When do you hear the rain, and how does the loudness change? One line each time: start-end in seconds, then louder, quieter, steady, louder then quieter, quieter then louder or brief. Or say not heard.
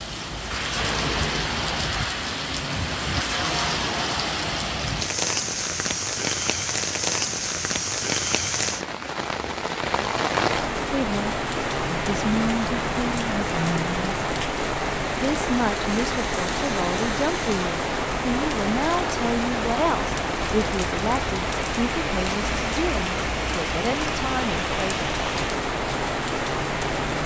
0.0-27.2 steady.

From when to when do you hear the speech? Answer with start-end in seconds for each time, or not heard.
10.9-14.2, 15.2-25.1.